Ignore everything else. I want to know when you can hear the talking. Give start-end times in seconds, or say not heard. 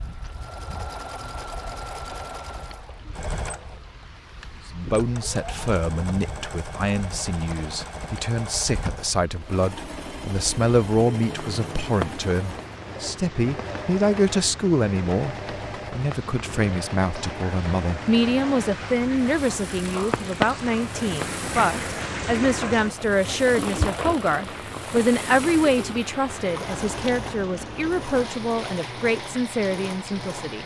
4.7-30.6.